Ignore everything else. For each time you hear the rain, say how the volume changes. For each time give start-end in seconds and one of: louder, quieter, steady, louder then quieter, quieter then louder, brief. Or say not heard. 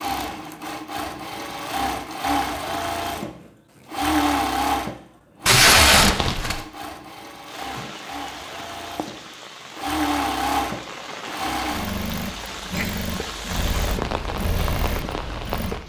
7.5-15.8 louder.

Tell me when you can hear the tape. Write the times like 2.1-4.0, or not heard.
5.5-6.6.